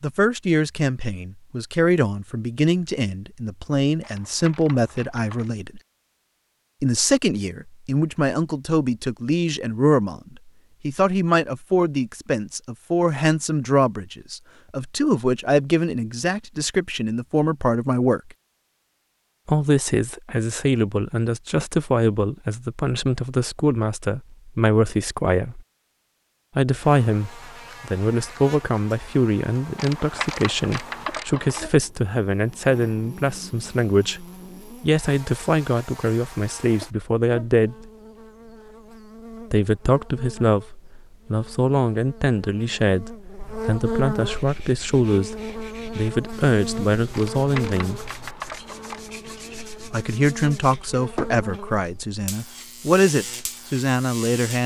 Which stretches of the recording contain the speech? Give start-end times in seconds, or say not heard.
0.0-5.8, 6.8-18.2, 19.4-25.6, 26.6-37.9, 39.5-48.0, 49.7-54.6.